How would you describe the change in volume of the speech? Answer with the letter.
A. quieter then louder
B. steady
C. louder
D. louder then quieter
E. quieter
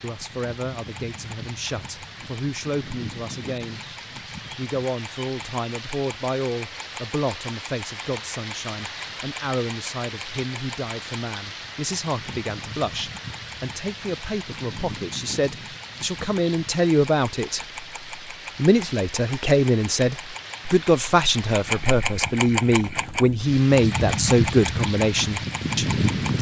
C.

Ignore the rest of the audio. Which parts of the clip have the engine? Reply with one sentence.
You can hear the engine from 0.0 to 26.3 s.